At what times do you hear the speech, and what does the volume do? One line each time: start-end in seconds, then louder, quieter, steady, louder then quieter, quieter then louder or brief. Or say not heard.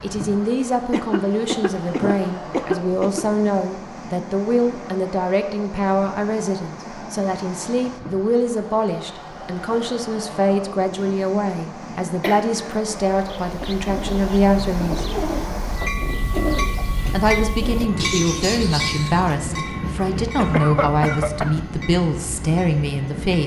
0.0-15.1 steady
17.1-23.4 steady.